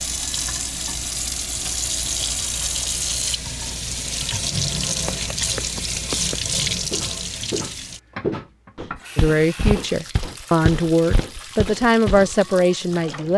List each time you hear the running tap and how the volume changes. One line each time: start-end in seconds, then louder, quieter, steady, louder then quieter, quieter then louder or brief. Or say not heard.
0.0-13.3 quieter.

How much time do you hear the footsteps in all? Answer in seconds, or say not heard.
7 s.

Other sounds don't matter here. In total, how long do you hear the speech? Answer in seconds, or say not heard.
4 s.